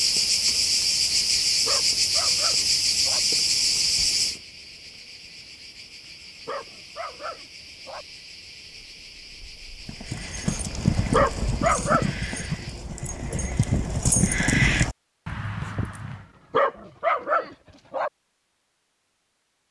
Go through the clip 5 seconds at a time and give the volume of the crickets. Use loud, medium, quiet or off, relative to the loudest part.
loud, quiet, quiet, off.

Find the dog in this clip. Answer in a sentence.
You can hear the dog from 1.6 to 3.2 s, from 6.5 to 8.1 s, from 11.1 to 12.2 s and from 16.5 to 18.1 s.